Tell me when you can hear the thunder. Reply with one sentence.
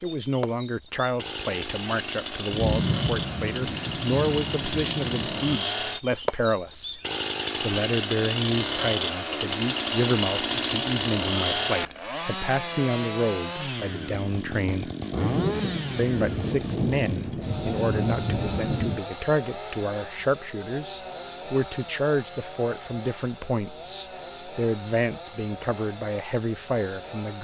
The thunder can be heard from 2.5 to 5.6 s and from 15.2 to 19.0 s.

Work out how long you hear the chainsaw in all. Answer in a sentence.
The chainsaw can be heard for 27 seconds in total.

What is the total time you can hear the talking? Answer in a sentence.
The talking can be heard for 26 seconds in total.